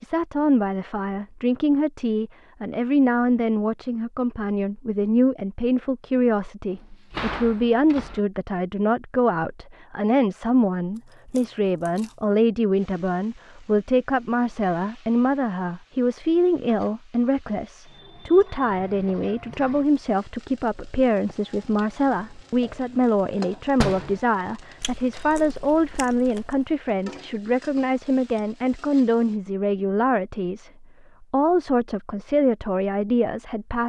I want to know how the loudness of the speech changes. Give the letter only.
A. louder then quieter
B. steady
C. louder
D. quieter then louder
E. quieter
B.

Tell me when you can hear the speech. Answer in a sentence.
You can hear the speech from 0.0 to 33.8 s.